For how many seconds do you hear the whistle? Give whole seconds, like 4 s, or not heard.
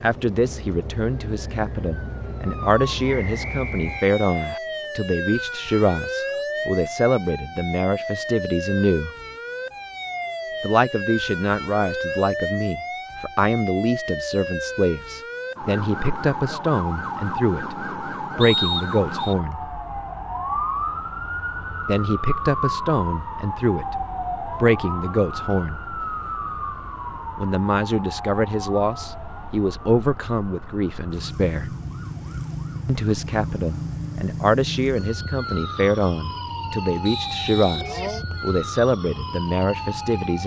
4 s.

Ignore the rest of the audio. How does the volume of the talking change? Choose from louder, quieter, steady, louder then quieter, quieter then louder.
steady.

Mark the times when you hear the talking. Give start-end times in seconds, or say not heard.
0.0-9.1, 10.6-19.6, 21.8-25.8, 27.4-31.8, 32.9-40.4.